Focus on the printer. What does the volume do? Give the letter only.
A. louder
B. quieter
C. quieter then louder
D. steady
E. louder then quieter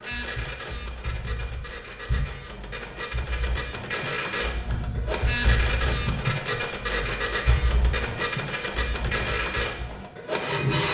A.